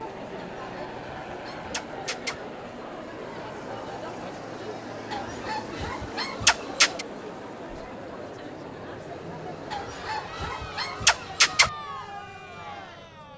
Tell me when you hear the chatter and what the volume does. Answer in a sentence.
You can hear the chatter from 0.0 to 13.3 s, at a steady volume.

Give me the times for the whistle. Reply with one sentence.
The whistle can't be heard in this clip.